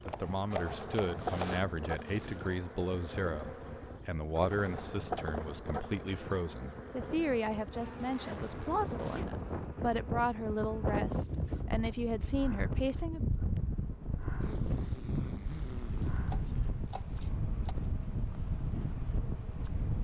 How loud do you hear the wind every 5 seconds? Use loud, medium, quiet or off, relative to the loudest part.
medium, medium, loud, loud.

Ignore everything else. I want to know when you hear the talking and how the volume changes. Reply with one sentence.
You can hear the talking from 0.1 to 13.2 s, at a steady volume.